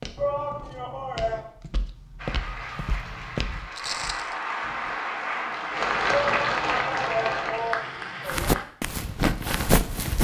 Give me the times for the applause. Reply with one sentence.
The applause can be heard from 2.1 to 8.7 s.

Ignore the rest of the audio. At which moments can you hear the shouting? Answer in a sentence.
The shouting can be heard from 0.1 to 1.4 s and from 6.1 to 8.6 s.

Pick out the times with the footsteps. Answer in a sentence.
The footsteps can be heard from 0.0 to 5.0 s and from 8.3 to 10.1 s.